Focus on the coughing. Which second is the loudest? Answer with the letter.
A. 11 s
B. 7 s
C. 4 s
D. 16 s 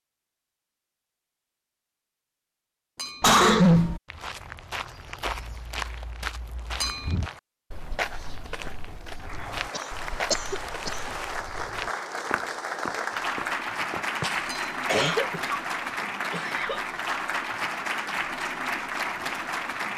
C.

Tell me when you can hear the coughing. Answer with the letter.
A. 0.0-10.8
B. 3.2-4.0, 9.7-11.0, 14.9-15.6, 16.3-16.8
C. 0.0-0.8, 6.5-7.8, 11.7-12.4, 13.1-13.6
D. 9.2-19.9
B.